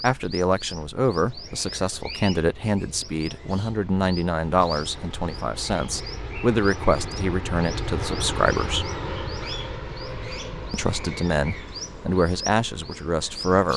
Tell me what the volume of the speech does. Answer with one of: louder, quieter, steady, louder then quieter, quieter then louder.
steady.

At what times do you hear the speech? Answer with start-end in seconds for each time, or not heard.
0.0-8.9, 10.7-13.7.